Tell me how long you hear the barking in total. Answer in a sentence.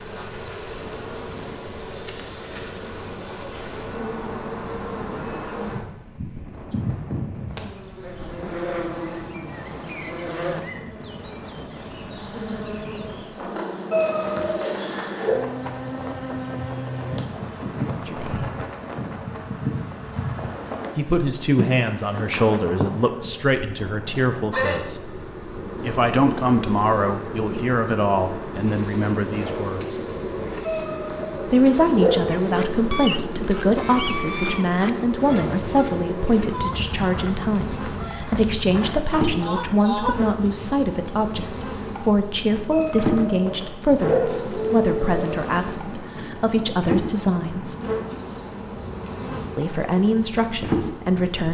The barking can be heard for 6 seconds in total.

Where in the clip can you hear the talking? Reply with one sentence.
The talking can be heard from 18.1 to 18.5 s, from 20.9 to 25.0 s, from 25.8 to 29.9 s, from 31.4 to 47.8 s and from 49.5 to 51.4 s.